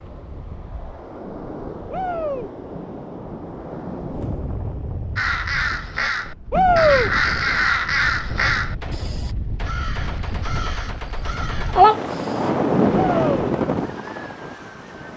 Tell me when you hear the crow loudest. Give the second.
12 s.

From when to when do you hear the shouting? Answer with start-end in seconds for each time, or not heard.
1.9-2.5, 6.5-7.1, 13.1-13.5.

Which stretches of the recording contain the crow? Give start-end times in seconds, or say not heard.
5.2-12.5.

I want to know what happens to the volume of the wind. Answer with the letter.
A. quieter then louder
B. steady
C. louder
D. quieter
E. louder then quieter
C.